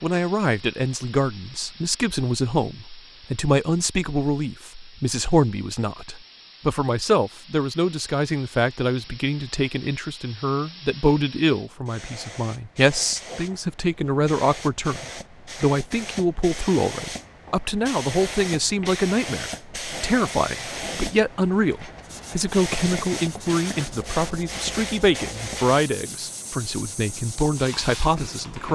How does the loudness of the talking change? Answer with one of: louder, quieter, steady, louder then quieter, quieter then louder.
steady.